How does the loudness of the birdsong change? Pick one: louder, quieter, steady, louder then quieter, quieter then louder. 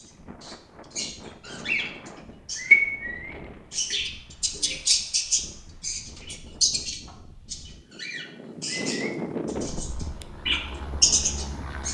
quieter then louder.